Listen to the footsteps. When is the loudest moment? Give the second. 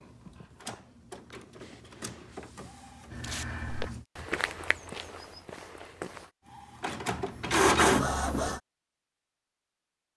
4 s.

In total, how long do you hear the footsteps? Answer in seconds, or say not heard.
3 s.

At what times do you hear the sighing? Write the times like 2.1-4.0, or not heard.
not heard.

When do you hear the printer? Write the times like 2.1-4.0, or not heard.
0.0-4.0, 6.5-8.6.